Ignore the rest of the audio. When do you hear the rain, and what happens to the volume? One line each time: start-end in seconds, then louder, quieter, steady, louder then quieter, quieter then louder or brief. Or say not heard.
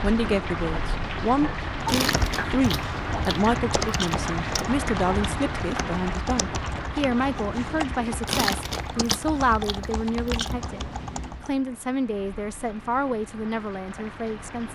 0.0-14.7 quieter.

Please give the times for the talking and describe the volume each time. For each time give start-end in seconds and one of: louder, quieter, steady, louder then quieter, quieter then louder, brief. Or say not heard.
0.0-14.7 steady.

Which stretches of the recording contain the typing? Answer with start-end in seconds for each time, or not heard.
2.0-11.5.